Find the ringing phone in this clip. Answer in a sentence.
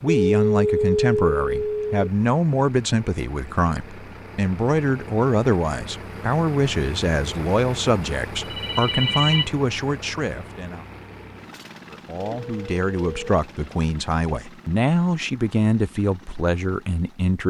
The ringing phone can be heard from 0.1 to 2.1 s, from 8.4 to 9.5 s and from 12.2 to 13.7 s.